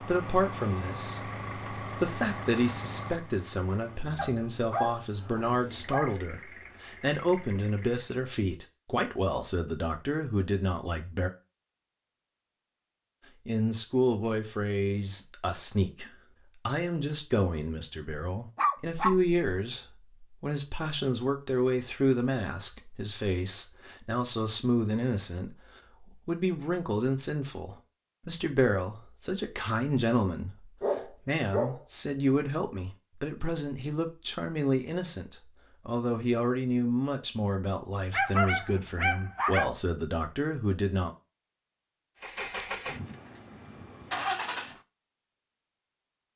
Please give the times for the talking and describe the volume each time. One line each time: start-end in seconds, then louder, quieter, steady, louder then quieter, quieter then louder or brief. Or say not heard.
0.0-11.3 steady
13.4-41.1 steady.